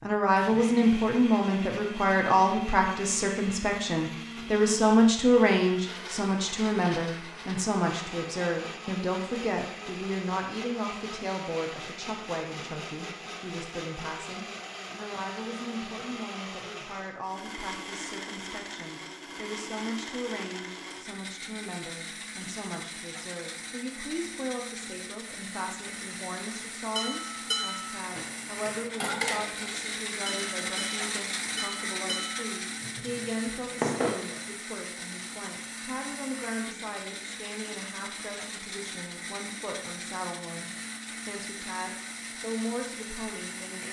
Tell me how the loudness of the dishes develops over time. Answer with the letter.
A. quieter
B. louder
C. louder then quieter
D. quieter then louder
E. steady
A.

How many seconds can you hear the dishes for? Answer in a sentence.
You can hear the dishes for 7 seconds altogether.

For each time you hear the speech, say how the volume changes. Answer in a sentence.
You can hear the speech from 0.0 to 43.8 s, getting quieter.